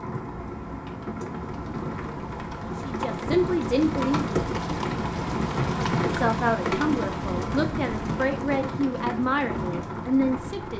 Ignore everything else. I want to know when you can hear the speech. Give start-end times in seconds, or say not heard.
2.8-4.3, 6.2-10.7.